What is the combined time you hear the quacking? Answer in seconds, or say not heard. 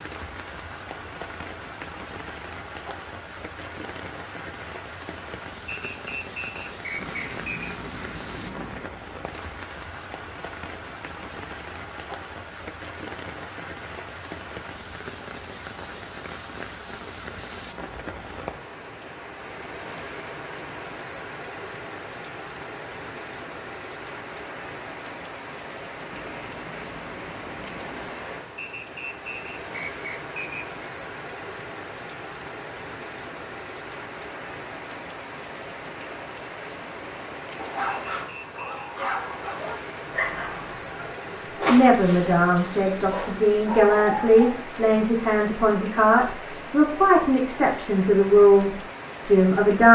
4 s.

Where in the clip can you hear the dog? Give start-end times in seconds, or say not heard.
37.5-45.0.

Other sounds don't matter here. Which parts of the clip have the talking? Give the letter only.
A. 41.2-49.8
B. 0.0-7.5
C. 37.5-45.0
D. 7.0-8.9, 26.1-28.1
A.